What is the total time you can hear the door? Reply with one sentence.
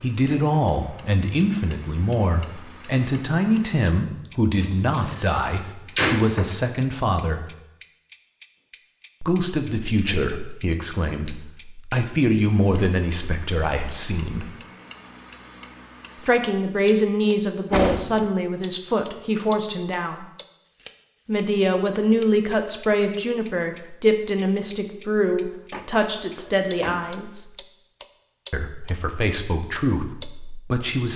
You can hear the door for 4 seconds altogether.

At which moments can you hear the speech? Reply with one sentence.
You can hear the speech from 0.0 to 7.5 s, from 9.2 to 14.4 s, from 16.2 to 20.2 s, from 21.2 to 27.5 s and from 28.5 to 31.1 s.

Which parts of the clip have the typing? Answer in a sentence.
You can't hear the typing here.